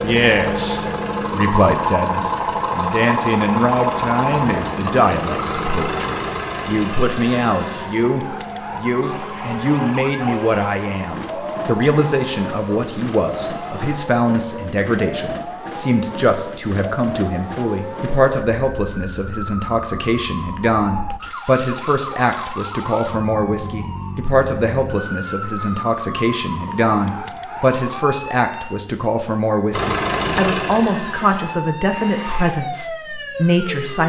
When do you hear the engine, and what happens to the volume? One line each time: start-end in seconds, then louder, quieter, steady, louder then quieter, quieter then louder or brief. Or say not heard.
0.0-13.9 quieter
29.7-32.5 brief.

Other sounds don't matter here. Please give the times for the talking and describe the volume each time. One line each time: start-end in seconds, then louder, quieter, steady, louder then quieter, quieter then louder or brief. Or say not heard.
0.0-34.0 steady.